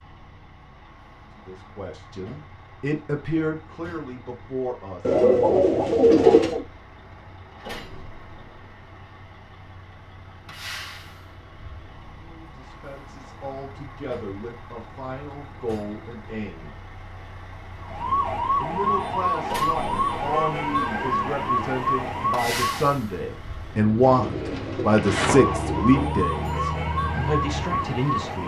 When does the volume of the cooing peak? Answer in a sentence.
The loudest moment of the cooing is at 6 seconds.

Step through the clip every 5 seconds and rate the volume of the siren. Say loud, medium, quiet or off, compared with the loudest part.
off, off, off, loud, loud, loud.